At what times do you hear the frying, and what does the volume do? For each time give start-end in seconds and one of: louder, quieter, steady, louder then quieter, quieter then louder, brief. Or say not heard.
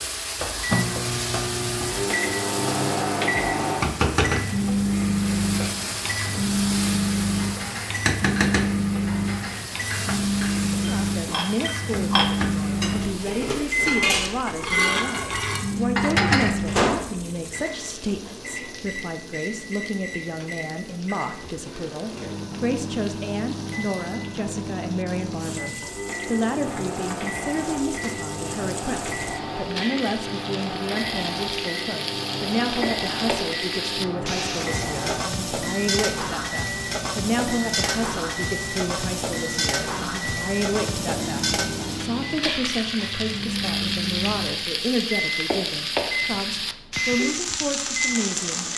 0.0-48.7 quieter then louder.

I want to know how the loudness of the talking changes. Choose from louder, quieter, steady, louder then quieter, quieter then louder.
steady.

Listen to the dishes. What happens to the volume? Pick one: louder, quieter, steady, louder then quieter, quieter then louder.
louder.